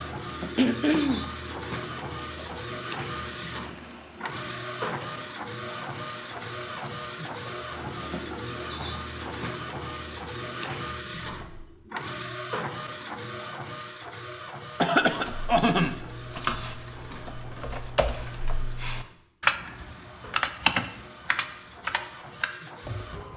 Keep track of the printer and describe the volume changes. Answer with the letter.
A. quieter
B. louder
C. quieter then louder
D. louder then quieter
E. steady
A.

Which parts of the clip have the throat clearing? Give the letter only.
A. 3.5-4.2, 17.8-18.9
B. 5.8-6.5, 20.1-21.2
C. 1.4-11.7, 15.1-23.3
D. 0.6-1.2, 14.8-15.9
D.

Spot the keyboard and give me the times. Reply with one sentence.
You can hear the keyboard from 1.4 to 11.7 s and from 15.1 to 23.3 s.